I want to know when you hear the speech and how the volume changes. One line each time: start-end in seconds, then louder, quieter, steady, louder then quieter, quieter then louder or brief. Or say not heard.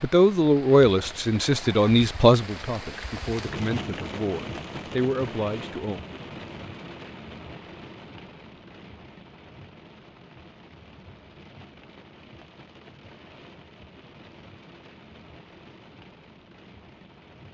0.0-6.0 quieter then louder.